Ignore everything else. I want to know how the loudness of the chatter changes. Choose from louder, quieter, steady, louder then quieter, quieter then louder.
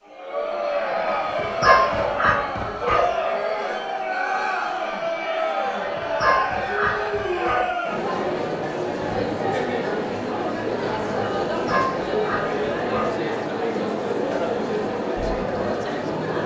steady.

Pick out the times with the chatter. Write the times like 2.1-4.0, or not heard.
0.0-16.4.